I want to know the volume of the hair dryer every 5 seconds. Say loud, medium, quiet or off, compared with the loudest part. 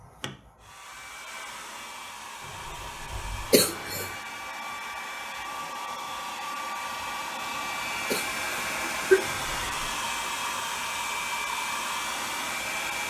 medium, loud, loud.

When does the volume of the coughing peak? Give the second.
9 s.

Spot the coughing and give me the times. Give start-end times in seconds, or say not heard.
3.5-4.1, 8.1-9.2.